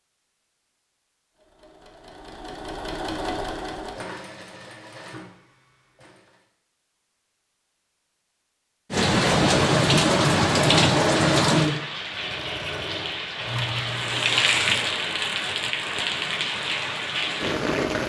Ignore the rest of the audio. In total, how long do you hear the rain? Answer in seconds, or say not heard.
9 s.